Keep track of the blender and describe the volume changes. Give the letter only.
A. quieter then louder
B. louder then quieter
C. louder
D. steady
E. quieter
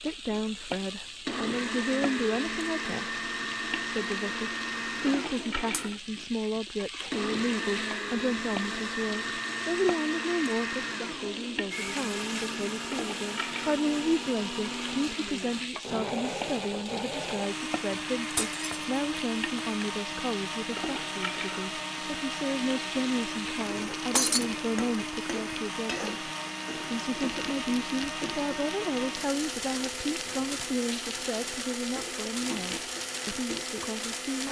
D.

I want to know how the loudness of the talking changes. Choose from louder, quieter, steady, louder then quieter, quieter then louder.
steady.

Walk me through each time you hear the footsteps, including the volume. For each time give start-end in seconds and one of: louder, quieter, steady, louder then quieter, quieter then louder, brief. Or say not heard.
not heard.